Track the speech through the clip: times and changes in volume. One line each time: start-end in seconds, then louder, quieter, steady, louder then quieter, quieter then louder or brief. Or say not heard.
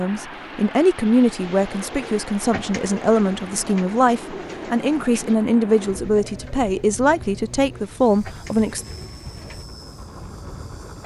0.0-8.8 steady.